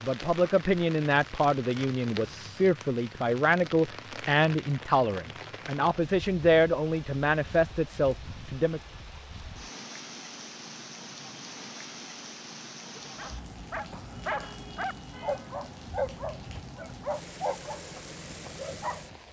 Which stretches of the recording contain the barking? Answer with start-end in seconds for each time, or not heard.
12.9-19.2.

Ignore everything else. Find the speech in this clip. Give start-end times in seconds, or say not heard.
0.0-8.8.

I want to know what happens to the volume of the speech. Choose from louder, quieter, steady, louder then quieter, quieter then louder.
steady.